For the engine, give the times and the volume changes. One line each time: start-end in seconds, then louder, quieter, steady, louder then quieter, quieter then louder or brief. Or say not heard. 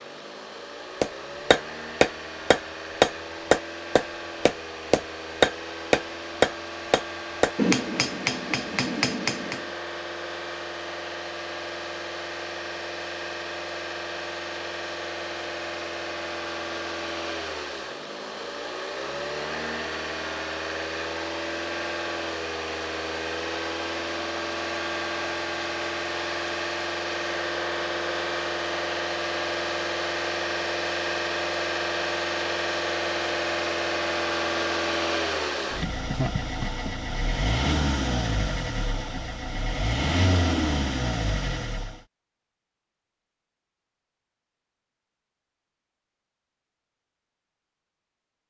0.0-42.0 louder.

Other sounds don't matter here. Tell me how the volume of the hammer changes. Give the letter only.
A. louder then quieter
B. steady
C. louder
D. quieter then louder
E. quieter
E.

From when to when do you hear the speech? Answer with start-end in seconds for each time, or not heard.
not heard.